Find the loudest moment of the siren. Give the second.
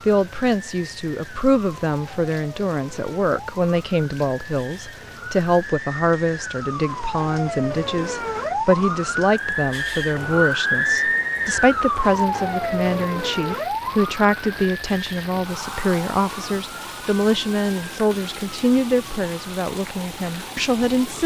11 s.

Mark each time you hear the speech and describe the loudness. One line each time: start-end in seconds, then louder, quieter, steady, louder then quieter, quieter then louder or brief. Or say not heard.
0.1-21.2 steady.